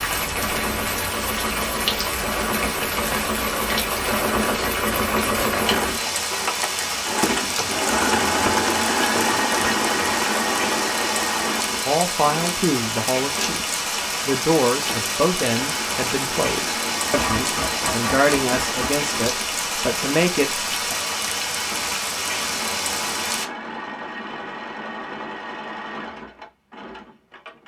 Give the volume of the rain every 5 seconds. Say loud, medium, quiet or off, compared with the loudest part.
loud, loud, loud, loud, loud, off.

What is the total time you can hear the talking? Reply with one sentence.
The talking can be heard for 9 seconds in total.